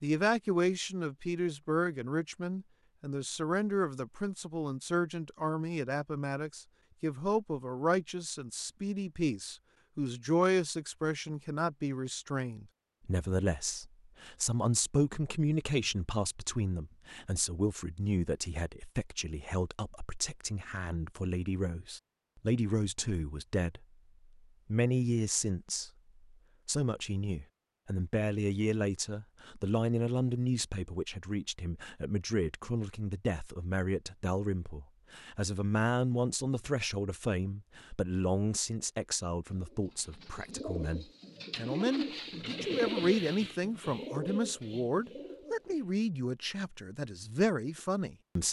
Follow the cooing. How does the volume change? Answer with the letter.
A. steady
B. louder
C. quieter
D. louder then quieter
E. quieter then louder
D.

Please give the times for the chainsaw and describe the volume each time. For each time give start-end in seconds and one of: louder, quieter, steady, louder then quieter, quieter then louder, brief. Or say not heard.
not heard.